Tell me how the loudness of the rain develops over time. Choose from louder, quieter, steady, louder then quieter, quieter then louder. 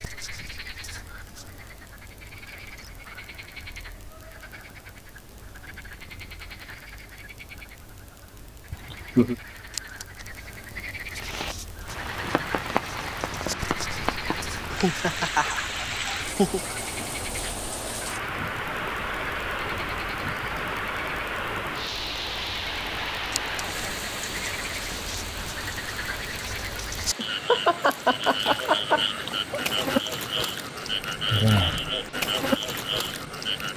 quieter.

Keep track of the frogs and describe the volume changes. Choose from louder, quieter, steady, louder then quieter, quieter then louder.
louder.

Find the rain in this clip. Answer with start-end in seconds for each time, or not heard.
11.2-33.7.